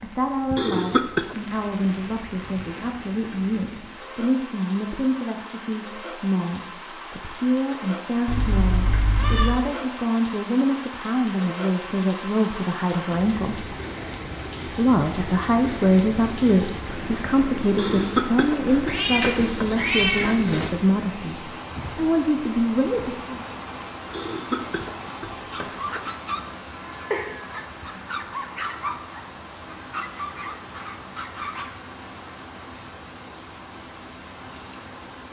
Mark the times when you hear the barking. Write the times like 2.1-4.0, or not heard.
25.4-31.9.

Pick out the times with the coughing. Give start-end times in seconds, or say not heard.
0.6-1.4, 17.8-19.5, 24.1-26.1.